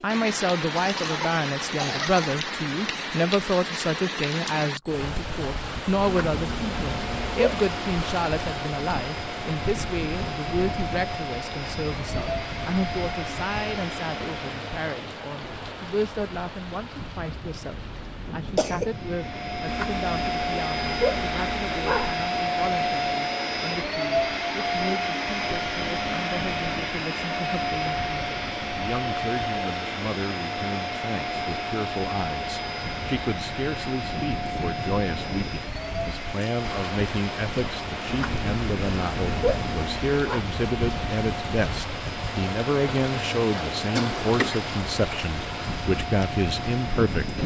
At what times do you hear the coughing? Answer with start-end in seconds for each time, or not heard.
0.8-2.4, 17.4-18.9, 44.0-44.7.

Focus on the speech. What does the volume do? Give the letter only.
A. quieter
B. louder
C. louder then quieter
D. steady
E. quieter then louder
E.